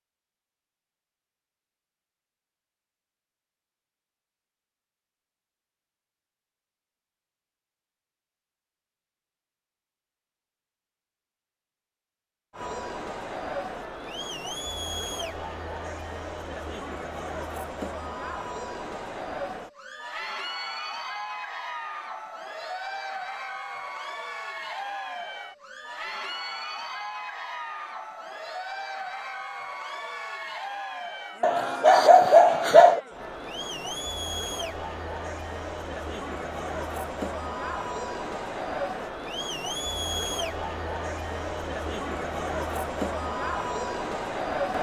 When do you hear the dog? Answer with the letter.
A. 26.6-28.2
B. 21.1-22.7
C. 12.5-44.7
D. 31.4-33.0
D.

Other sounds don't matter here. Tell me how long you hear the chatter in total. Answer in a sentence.
The chatter can be heard for 32 seconds in total.